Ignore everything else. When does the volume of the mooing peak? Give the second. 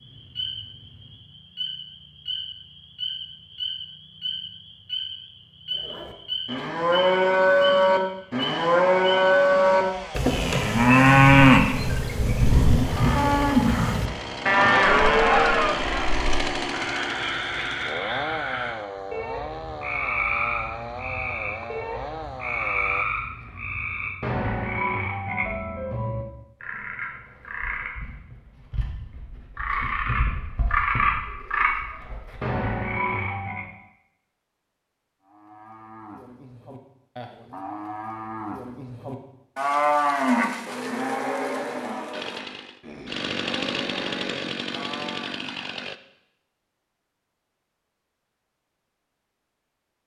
11 s.